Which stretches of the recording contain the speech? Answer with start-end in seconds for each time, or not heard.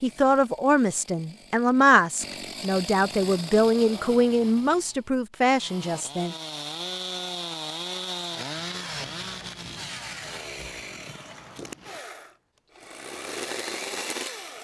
0.0-6.3.